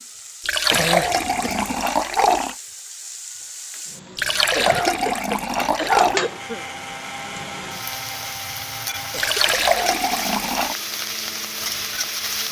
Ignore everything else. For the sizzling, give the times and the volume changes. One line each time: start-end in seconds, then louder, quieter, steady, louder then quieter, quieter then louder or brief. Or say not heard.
0.0-12.4 louder.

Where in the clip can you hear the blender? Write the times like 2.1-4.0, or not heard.
6.2-12.4.